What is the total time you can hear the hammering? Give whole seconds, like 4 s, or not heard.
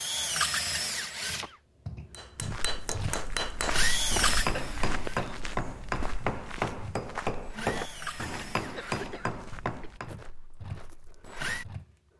8 s.